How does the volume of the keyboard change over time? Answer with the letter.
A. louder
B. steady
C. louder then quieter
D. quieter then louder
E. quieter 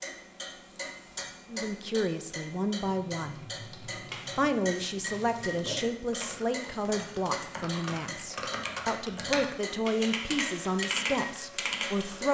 A.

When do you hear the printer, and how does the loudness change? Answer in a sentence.
You can't hear the printer here.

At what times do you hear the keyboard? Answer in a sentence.
The keyboard can be heard from 2.8 to 12.2 s.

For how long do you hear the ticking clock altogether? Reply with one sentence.
The ticking clock can be heard for 12 seconds in total.